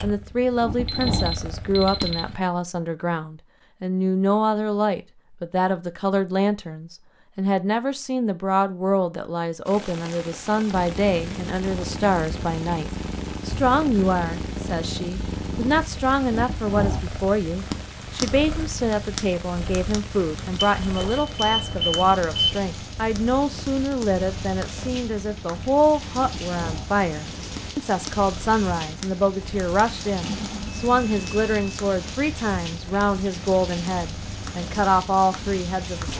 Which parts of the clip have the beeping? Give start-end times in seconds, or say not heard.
0.8-2.2, 20.8-22.6, 30.2-31.8.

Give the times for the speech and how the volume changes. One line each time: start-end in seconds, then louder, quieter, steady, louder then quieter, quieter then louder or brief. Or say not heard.
0.0-36.1 steady.